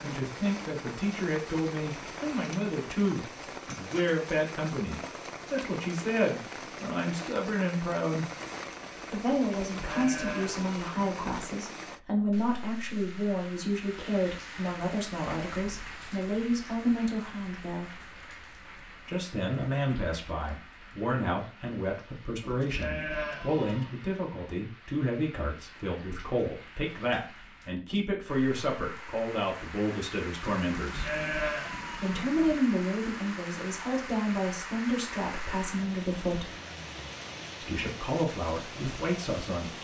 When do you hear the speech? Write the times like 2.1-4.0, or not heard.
0.0-8.2, 9.1-18.1, 19.1-31.1, 31.9-36.5, 37.6-39.7.